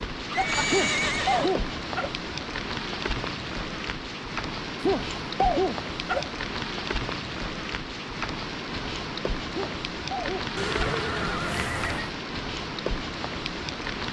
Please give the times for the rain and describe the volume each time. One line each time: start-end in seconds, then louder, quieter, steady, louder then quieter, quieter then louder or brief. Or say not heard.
0.0-14.0 steady.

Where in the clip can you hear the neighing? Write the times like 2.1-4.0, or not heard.
0.3-1.6, 10.6-12.2.